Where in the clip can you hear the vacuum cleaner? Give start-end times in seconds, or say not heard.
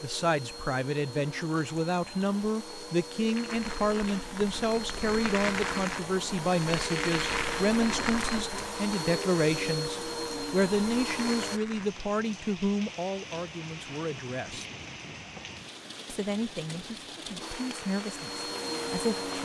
0.0-11.6, 17.4-19.3.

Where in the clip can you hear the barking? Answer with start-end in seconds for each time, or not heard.
not heard.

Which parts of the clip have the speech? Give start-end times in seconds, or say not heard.
0.0-14.7, 16.1-19.3.